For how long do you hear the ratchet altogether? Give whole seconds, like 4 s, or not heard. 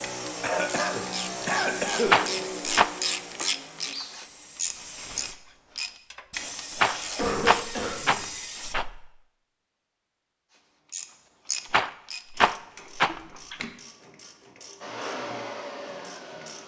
14 s.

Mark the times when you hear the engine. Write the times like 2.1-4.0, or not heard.
0.0-4.0, 14.8-16.6.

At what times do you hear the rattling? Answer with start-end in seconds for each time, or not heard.
2.0-2.9, 6.8-8.8, 11.7-13.2.